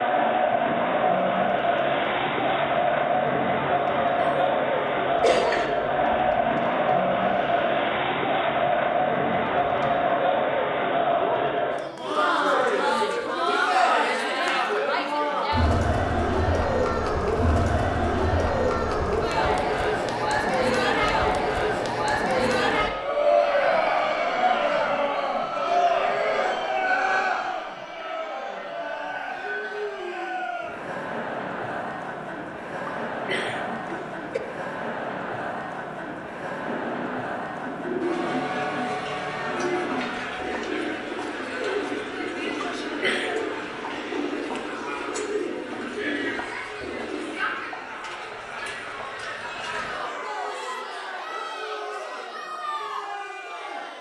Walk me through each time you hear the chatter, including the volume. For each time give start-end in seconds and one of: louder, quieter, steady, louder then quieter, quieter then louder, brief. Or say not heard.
0.0-53.9 quieter.